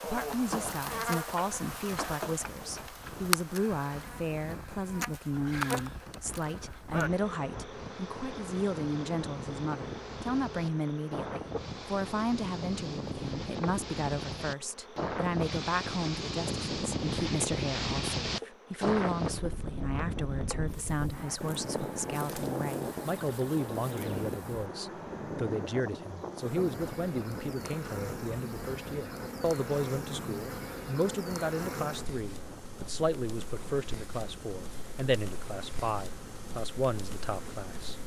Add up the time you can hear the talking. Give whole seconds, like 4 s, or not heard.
38 s.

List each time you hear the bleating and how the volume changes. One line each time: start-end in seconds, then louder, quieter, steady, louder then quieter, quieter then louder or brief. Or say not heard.
not heard.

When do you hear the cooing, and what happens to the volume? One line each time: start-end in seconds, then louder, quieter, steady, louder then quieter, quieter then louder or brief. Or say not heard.
not heard.